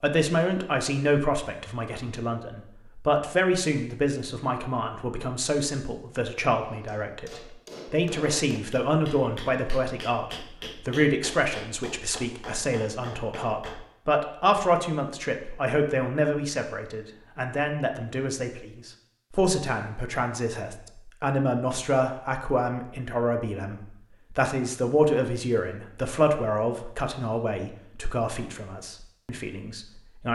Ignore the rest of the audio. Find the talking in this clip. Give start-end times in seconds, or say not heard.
0.0-30.3.